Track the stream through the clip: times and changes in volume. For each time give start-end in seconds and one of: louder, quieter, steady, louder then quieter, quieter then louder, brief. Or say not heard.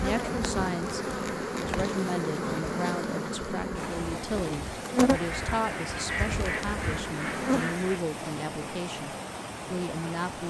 3.8-10.4 steady.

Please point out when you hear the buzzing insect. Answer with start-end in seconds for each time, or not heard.
0.0-7.8.